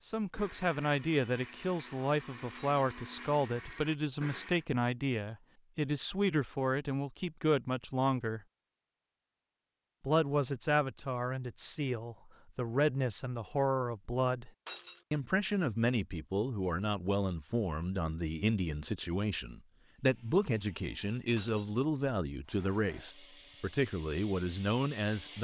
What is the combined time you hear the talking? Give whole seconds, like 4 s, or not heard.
23 s.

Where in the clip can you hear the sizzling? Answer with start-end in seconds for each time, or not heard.
not heard.